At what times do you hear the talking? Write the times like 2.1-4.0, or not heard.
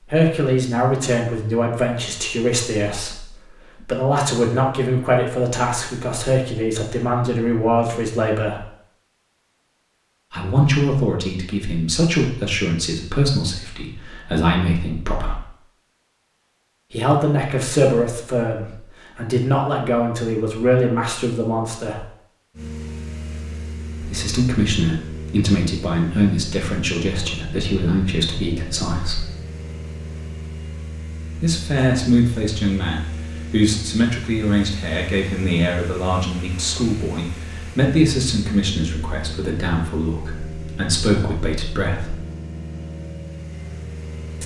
0.1-8.7, 10.3-15.4, 16.9-22.1, 24.0-29.2, 31.4-42.1.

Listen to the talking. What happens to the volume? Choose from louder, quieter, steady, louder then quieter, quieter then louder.
steady.